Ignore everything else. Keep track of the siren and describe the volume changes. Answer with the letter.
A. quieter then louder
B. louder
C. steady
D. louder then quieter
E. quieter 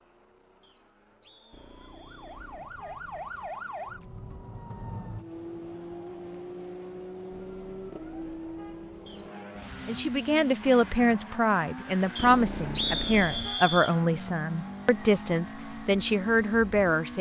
E.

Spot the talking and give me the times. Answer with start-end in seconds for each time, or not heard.
9.8-17.1.